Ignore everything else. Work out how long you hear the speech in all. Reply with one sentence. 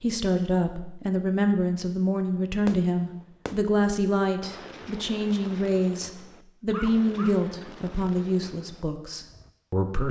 You can hear the speech for 10 seconds altogether.